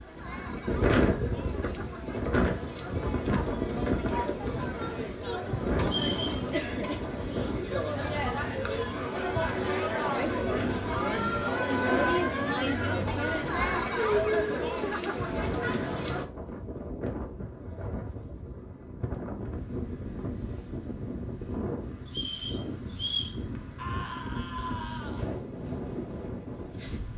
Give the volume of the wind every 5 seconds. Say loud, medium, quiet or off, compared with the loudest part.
loud, medium, medium, medium, medium, medium.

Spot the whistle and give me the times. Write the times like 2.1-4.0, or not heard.
5.8-6.5, 22.1-23.4.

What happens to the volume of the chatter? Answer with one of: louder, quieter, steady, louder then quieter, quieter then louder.
louder.